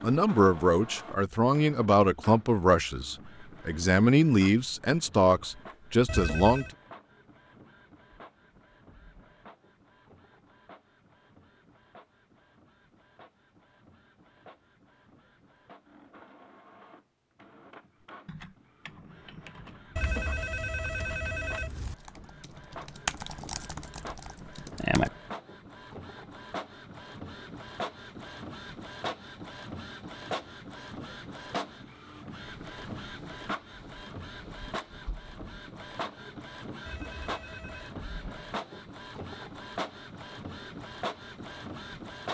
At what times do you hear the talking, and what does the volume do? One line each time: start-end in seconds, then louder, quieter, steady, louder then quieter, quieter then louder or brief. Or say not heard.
0.0-6.7 quieter then louder.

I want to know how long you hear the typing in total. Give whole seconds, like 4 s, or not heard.
7 s.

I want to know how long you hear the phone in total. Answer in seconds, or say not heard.
4 s.